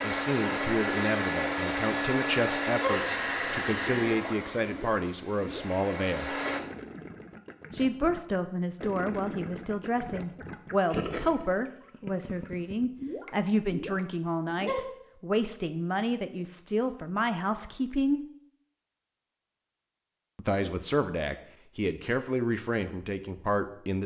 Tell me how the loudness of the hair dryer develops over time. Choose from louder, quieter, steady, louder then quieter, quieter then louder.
quieter.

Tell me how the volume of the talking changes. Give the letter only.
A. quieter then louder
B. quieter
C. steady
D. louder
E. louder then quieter
C.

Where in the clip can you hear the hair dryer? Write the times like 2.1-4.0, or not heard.
0.0-6.6.